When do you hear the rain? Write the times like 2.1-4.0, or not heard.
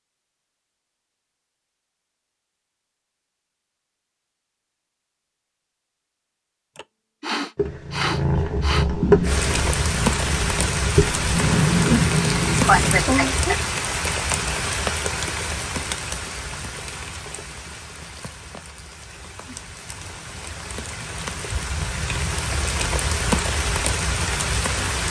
9.2-25.0.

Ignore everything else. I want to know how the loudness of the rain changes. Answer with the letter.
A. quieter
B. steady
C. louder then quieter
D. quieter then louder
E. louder
D.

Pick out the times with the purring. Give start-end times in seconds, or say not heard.
7.5-13.1.